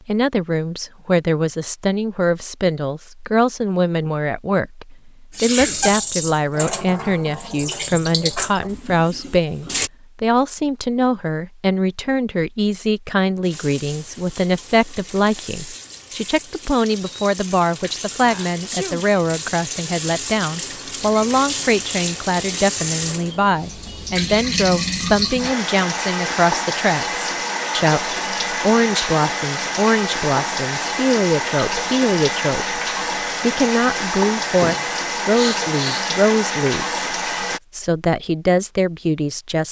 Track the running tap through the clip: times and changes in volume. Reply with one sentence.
The running tap can be heard from 5.3 to 9.9 s, getting quieter; and from 13.4 to 37.6 s, getting louder.